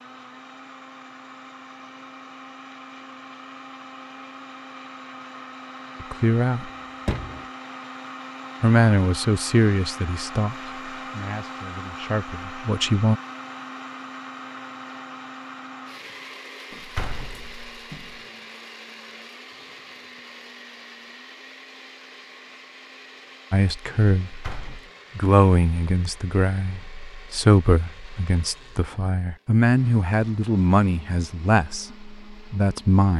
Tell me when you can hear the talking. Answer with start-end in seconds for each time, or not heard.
6.0-6.7, 8.6-13.2, 23.5-24.4, 25.1-33.1.